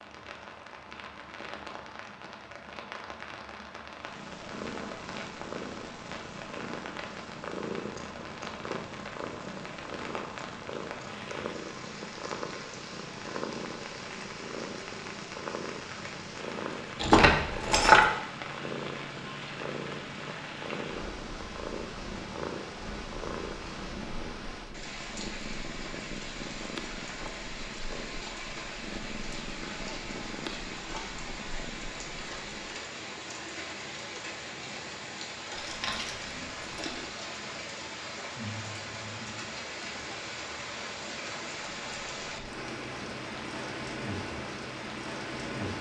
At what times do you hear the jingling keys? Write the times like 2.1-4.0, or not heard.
17.0-18.1, 35.5-37.1.